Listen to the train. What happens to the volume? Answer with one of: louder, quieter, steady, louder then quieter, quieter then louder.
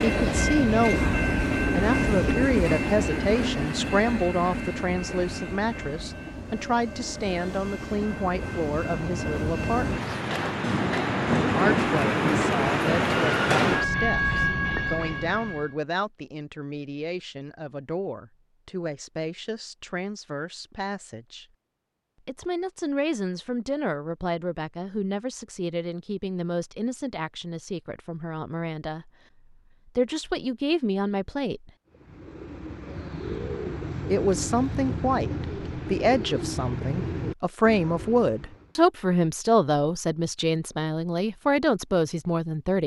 quieter then louder.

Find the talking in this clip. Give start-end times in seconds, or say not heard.
0.0-10.1, 11.4-21.4, 22.2-29.1, 29.9-31.7, 34.0-42.8.